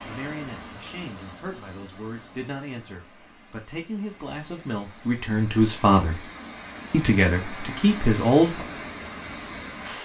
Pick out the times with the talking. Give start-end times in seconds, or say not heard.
0.0-6.2, 6.9-8.7.